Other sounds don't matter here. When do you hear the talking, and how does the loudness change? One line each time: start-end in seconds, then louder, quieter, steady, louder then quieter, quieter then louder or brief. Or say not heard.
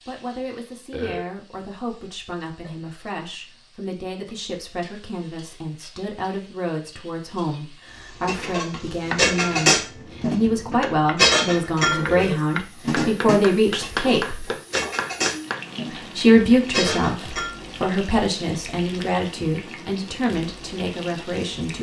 0.1-14.5 louder
15.9-21.7 quieter.